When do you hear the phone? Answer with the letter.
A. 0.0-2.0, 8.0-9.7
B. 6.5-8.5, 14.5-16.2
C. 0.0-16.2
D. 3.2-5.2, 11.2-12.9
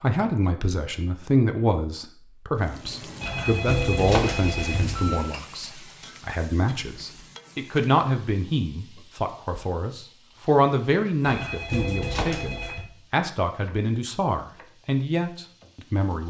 D.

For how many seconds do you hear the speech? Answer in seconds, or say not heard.
16 s.